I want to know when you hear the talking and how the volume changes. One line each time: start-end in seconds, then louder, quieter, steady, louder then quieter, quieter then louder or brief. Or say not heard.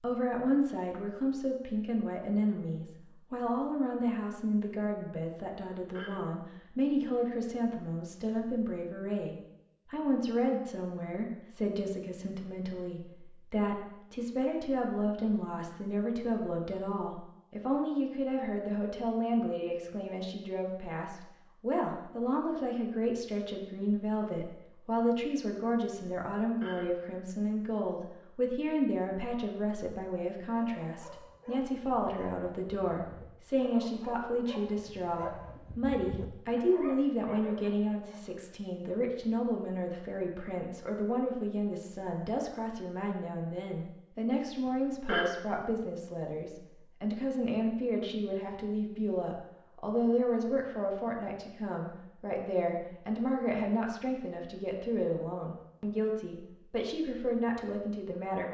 0.0-58.4 steady.